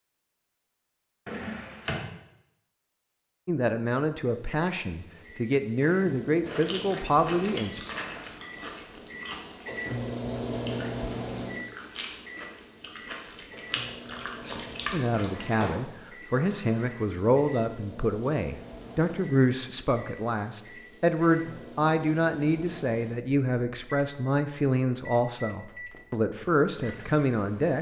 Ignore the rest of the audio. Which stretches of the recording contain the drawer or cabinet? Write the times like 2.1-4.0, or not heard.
1.2-2.0, 15.4-16.9.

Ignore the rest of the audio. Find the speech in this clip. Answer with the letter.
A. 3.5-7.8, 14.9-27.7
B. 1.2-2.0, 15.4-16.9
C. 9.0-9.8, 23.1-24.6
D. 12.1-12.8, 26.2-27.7
A.